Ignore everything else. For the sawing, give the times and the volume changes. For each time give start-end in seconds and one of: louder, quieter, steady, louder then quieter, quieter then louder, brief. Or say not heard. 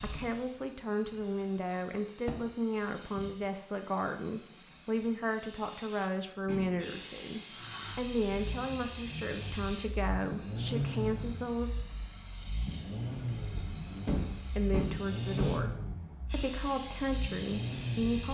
not heard.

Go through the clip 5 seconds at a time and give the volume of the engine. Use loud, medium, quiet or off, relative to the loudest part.
off, medium, loud, loud.